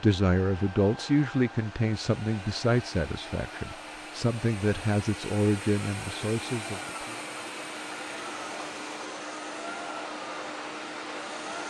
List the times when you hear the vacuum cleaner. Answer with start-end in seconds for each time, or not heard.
0.0-11.6.